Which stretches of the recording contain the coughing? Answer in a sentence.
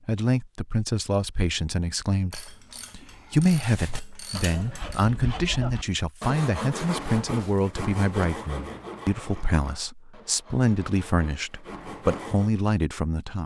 The coughing can't be heard in this clip.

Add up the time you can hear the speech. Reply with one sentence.
You can hear the speech for 13 seconds altogether.